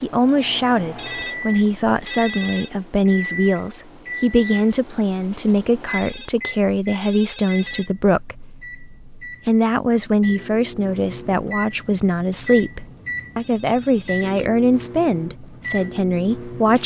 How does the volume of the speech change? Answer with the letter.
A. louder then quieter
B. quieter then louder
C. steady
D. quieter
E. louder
C.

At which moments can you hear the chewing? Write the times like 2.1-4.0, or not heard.
not heard.